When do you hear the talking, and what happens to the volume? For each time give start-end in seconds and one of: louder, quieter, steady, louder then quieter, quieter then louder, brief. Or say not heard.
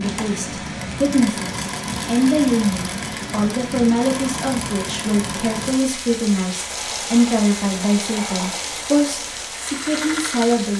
0.0-10.7 steady.